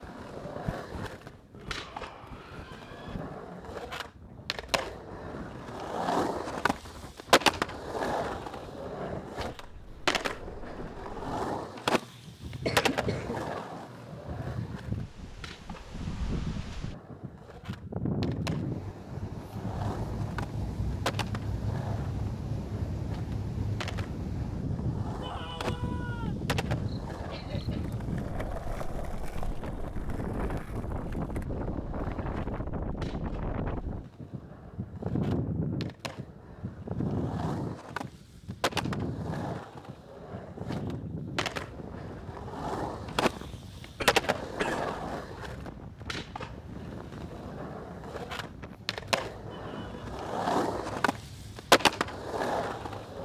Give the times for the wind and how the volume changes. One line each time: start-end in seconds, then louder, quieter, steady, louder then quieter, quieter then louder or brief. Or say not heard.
0.0-53.2 louder then quieter.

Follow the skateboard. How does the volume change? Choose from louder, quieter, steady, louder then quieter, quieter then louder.
quieter then louder.